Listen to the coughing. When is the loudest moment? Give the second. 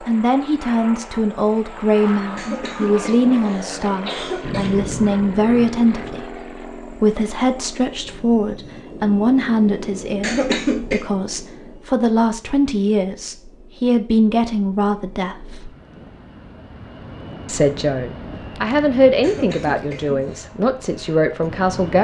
11 s.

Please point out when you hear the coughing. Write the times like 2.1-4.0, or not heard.
2.4-4.8, 10.2-11.0, 19.2-20.4.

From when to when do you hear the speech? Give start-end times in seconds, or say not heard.
0.0-15.7, 17.4-22.0.